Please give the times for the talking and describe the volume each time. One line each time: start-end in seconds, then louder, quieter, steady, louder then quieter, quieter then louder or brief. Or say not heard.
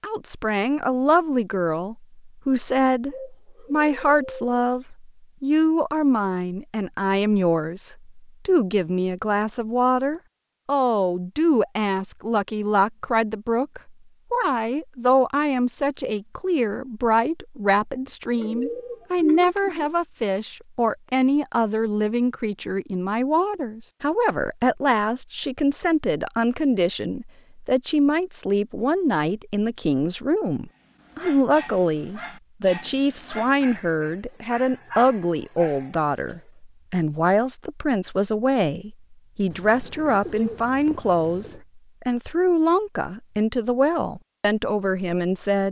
0.0-45.6 steady.